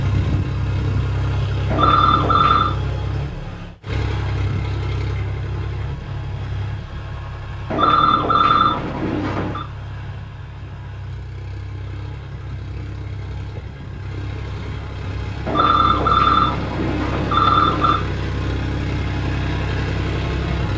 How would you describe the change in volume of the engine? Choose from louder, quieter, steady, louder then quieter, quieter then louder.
quieter then louder.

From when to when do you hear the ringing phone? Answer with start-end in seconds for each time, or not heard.
1.7-2.8, 7.7-9.7, 15.4-18.0.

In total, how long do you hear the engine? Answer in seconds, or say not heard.
21 s.